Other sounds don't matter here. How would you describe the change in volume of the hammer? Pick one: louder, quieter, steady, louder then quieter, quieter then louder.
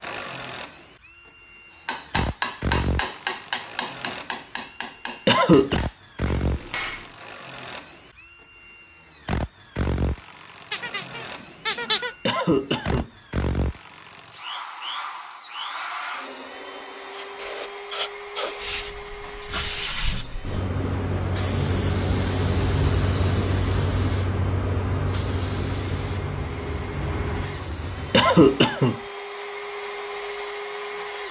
quieter.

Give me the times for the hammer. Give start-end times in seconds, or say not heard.
1.9-7.2.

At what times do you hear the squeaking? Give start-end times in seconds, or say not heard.
10.7-12.2.